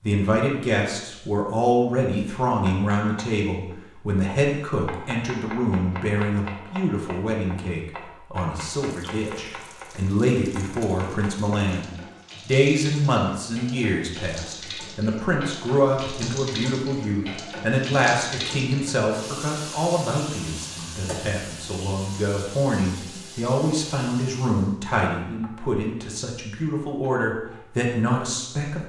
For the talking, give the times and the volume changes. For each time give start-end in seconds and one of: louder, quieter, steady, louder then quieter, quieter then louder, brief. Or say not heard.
0.0-28.8 steady.